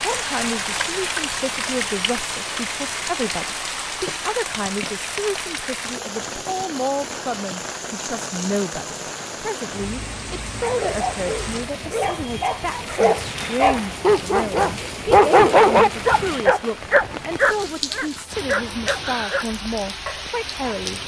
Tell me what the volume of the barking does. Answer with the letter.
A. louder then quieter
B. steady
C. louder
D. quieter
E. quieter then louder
A.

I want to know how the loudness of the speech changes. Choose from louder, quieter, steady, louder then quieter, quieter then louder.
steady.